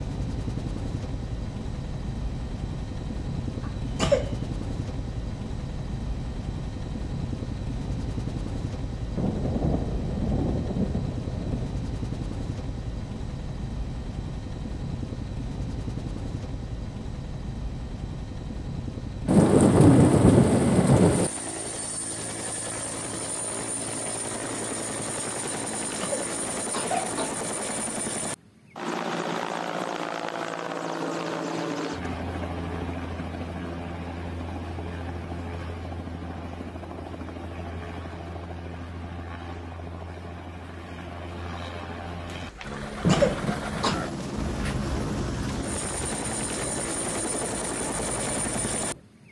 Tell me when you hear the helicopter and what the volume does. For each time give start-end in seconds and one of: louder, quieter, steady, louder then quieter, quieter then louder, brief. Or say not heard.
0.0-49.2 steady.